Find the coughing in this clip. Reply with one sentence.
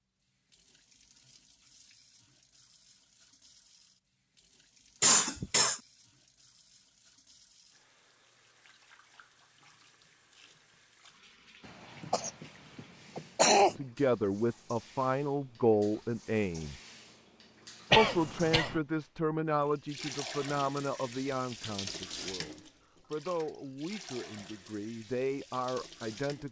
You can hear the coughing from 5.0 to 5.8 s, from 12.0 to 13.8 s and from 17.9 to 18.8 s.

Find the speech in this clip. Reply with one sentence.
The speech can be heard from 13.8 to 16.8 s and from 17.9 to 26.4 s.